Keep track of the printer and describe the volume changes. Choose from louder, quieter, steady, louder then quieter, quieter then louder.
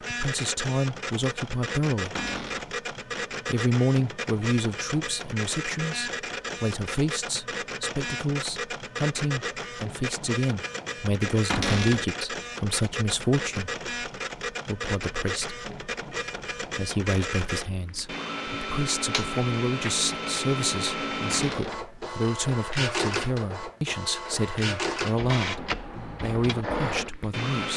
steady.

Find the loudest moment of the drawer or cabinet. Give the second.
12 s.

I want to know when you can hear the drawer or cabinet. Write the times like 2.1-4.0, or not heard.
2.1-2.7, 11.5-12.1, 21.3-21.9.